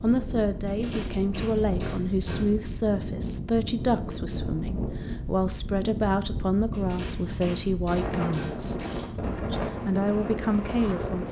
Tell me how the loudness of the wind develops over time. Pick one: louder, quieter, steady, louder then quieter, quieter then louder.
steady.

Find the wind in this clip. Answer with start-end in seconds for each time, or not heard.
0.0-11.2.